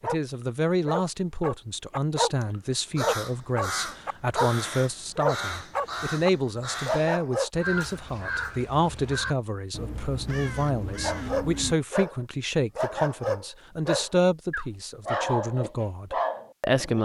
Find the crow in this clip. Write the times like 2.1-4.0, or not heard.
2.9-11.8.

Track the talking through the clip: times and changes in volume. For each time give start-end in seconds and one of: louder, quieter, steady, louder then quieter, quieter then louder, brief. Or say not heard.
0.0-17.0 steady.